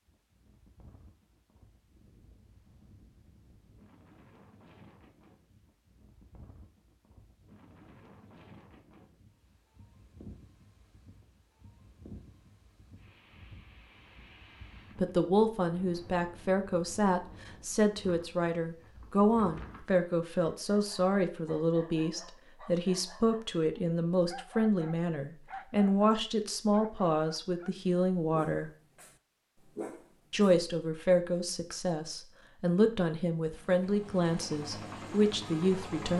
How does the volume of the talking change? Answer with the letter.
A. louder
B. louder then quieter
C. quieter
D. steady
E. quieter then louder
D.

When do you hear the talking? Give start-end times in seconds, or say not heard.
14.9-28.7, 30.3-36.1.